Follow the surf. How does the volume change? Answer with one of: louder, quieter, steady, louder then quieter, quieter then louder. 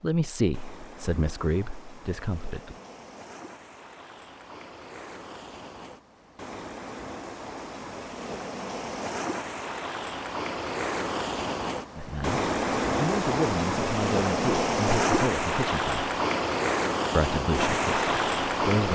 louder.